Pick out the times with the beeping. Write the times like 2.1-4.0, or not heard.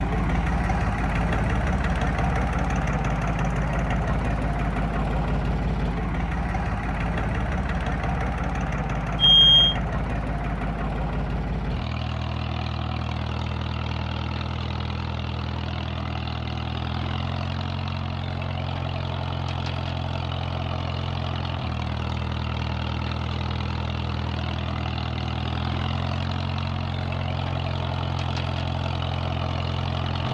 9.2-9.8.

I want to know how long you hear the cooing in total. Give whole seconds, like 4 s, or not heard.
not heard.